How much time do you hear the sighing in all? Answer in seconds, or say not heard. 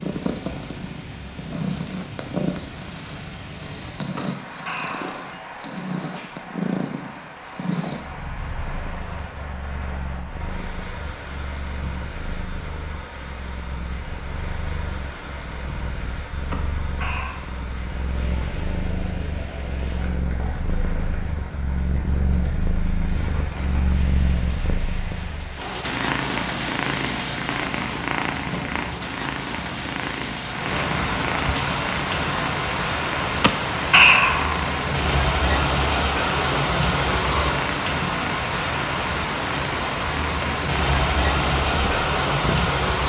3 s.